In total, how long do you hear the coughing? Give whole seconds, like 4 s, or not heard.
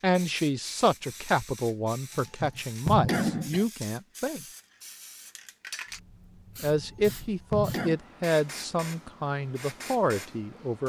3 s.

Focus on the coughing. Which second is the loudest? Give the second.
3 s.